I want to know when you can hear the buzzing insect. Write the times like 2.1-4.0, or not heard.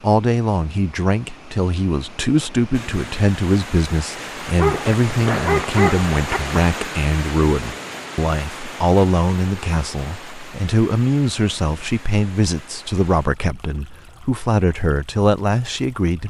not heard.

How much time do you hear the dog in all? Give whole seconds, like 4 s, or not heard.
2 s.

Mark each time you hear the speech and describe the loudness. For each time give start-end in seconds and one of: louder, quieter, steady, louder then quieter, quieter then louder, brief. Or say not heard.
0.0-16.2 steady.